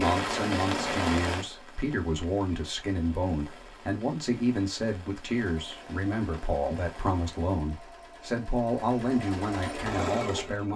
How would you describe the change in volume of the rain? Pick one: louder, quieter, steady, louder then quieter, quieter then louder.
quieter.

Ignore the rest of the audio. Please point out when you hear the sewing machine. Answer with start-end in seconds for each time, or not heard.
5.3-10.7.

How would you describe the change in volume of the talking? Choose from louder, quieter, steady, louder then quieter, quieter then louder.
steady.